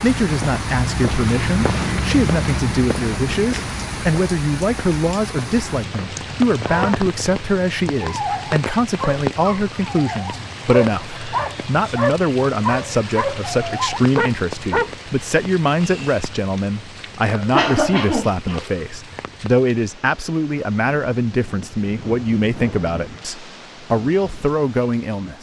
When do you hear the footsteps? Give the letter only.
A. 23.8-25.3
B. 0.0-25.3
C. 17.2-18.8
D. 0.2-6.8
D.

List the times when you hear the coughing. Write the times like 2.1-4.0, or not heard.
17.2-18.8.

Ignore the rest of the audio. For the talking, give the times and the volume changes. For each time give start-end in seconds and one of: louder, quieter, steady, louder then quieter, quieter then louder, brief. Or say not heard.
0.0-25.3 steady.